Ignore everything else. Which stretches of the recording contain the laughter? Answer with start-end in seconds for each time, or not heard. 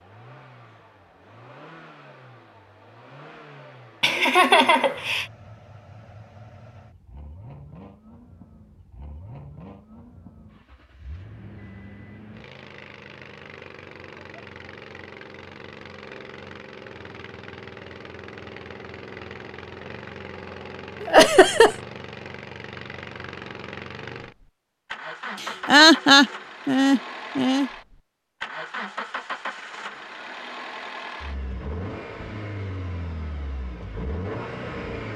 4.0-5.2, 21.0-21.8, 25.4-27.7.